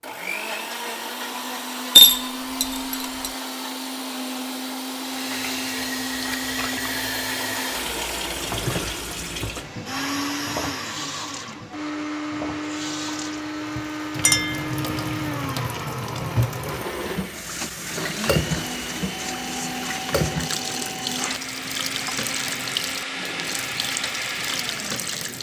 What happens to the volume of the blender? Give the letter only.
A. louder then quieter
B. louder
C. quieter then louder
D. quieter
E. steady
E.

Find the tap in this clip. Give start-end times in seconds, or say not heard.
4.9-25.3.